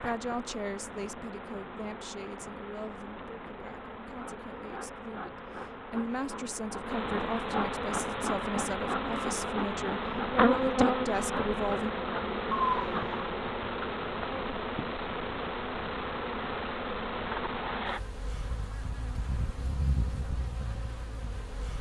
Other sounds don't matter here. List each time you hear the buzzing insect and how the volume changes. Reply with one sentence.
The buzzing insect can be heard from 0.0 to 21.7 s, getting louder then quieter.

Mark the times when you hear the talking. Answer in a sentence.
The talking can be heard from 0.0 to 11.9 s.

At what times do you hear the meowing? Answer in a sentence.
The meowing can be heard from 12.5 to 13.2 s.